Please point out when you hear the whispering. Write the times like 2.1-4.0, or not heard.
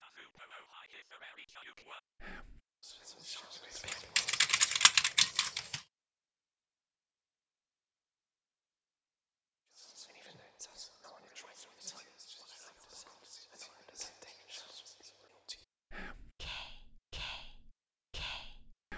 0.0-5.0, 9.7-18.9.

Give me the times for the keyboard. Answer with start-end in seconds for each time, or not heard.
3.9-5.8.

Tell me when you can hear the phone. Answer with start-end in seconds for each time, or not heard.
not heard.